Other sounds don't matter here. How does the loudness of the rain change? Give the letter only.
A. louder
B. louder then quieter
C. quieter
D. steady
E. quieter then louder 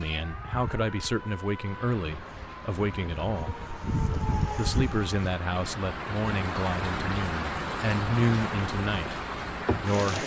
A.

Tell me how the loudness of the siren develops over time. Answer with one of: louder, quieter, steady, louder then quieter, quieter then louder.
louder.